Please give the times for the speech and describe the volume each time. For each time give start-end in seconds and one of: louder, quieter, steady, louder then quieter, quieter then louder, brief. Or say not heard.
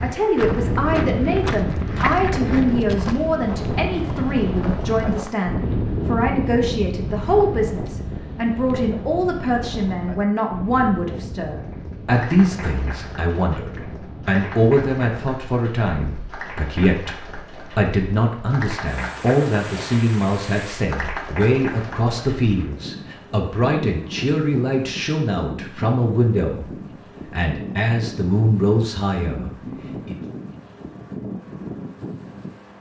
0.0-30.1 steady.